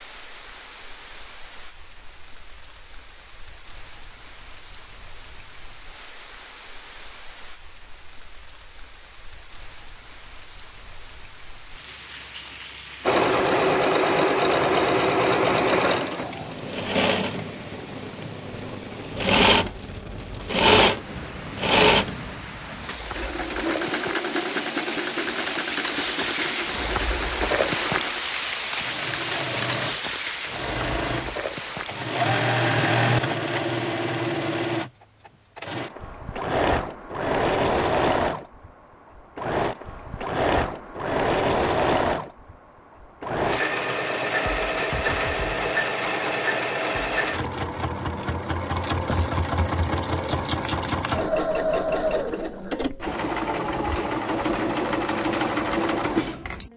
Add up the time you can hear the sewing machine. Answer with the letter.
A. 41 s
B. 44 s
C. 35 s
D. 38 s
B.